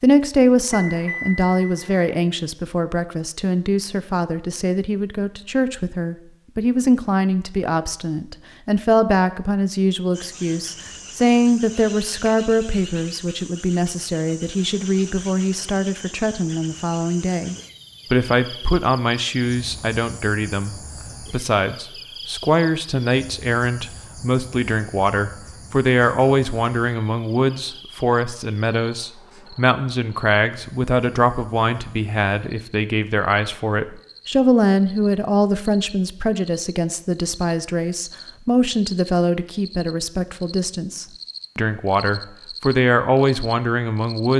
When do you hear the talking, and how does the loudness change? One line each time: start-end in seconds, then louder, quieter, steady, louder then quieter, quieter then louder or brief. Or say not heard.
0.0-44.3 steady.